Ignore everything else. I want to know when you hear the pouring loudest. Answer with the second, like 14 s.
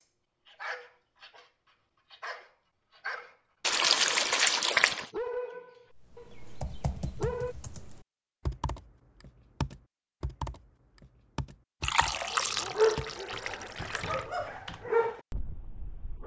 4 s.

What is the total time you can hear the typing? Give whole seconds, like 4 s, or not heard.
9 s.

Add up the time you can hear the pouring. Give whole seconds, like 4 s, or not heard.
4 s.